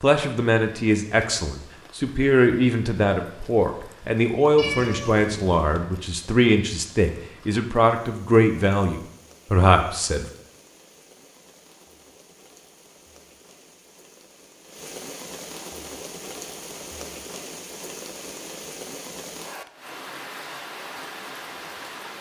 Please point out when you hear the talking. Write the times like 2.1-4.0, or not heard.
0.0-10.2.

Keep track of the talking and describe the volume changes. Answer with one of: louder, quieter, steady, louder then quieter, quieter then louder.
steady.